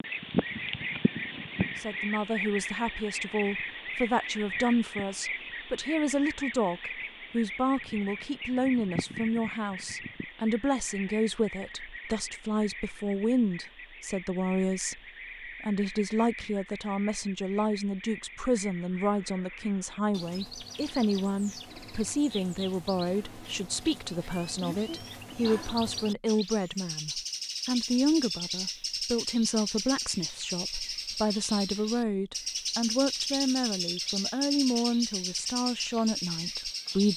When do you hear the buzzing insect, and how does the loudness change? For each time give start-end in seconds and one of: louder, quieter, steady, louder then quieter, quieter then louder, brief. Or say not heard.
not heard.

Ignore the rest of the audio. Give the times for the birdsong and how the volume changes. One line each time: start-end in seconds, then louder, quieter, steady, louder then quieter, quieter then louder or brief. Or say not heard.
0.0-37.1 quieter then louder.